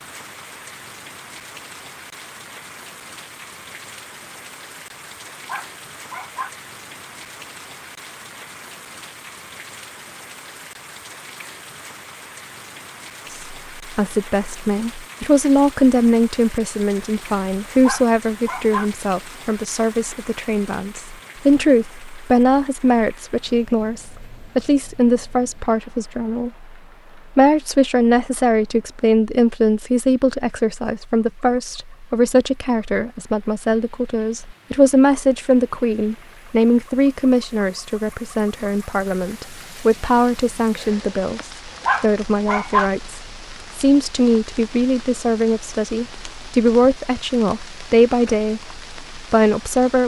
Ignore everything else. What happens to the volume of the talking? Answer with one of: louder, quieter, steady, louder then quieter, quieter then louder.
steady.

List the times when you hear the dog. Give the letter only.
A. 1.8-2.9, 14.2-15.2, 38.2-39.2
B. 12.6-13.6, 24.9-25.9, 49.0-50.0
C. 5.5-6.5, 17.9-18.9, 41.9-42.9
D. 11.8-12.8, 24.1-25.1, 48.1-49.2
C.